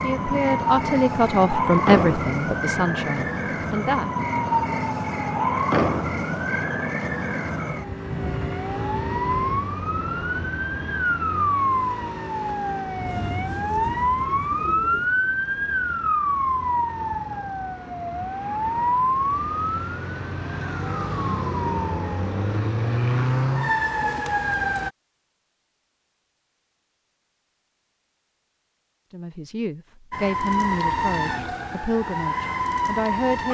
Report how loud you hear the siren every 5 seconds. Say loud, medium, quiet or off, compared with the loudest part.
loud, loud, loud, loud, loud, off, loud.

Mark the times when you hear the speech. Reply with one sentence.
The speech can be heard from 0.0 to 4.1 s and from 29.1 to 33.5 s.